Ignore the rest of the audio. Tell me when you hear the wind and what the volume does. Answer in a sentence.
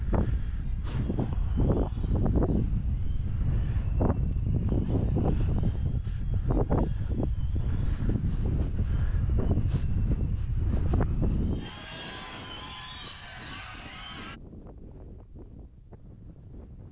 The wind can be heard from 0.0 to 16.8 s, getting quieter.